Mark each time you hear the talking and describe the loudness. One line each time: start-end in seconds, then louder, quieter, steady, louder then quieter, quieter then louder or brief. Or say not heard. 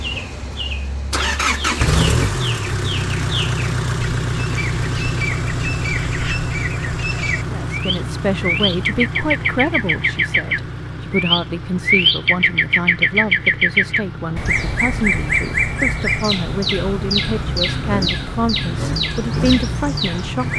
7.5-20.5 steady.